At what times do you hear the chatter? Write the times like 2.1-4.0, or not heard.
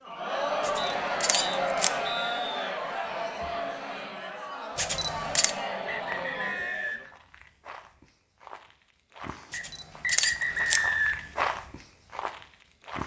0.0-7.0.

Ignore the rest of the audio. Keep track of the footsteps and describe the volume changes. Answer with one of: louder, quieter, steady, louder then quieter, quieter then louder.
louder.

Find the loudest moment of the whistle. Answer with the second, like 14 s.
11 s.